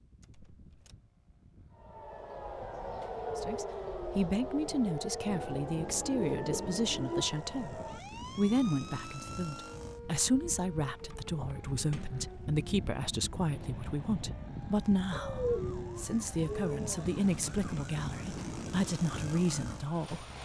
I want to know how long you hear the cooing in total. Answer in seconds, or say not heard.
4 s.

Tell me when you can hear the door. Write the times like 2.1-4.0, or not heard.
0.2-0.9, 11.9-12.4.